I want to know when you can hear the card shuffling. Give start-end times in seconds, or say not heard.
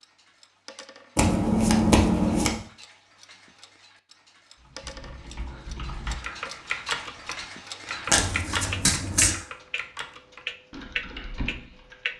1.1-2.6, 8.1-9.3.